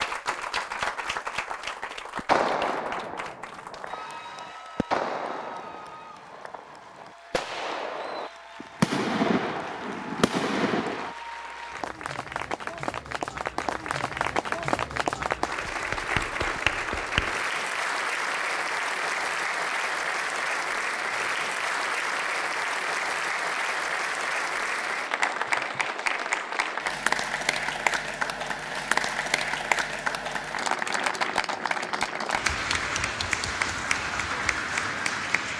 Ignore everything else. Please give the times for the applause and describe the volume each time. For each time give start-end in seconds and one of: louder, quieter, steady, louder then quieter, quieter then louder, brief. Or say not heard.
0.0-35.5 louder.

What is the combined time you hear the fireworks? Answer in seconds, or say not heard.
9 s.